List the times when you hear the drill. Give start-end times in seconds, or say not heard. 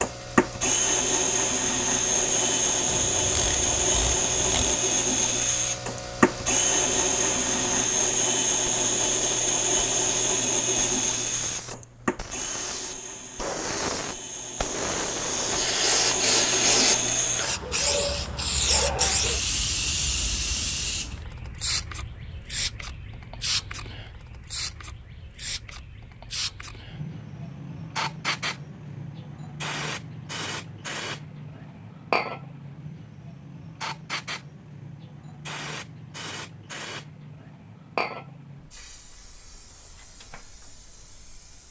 0.0-17.4.